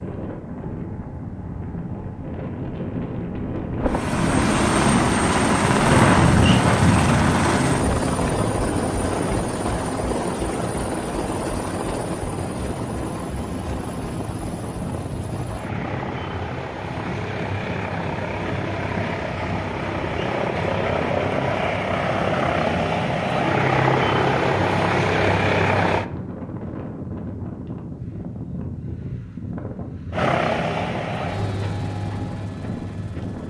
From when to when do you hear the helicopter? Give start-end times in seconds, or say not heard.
3.8-26.1, 30.1-33.4.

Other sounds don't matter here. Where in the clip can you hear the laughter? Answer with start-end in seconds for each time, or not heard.
not heard.